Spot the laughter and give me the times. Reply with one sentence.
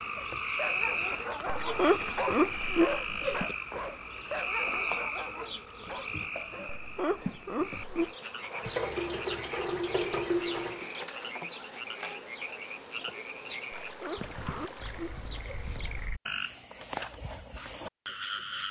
You can hear the laughter from 1.4 to 3.5 s, from 6.7 to 8.2 s and from 13.8 to 15.7 s.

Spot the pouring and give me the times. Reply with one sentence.
The pouring can be heard from 1.0 to 2.9 s, from 8.6 to 10.8 s and from 13.7 to 15.0 s.